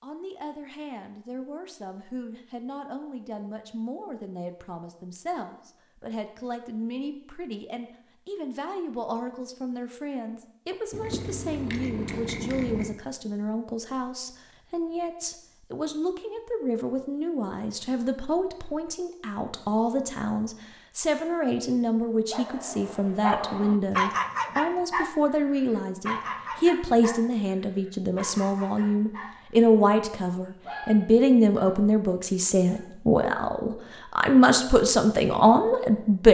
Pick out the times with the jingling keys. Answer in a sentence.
You can hear the jingling keys from 10.9 to 12.9 s.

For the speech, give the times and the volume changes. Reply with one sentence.
You can hear the speech from 0.0 to 36.2 s, getting louder.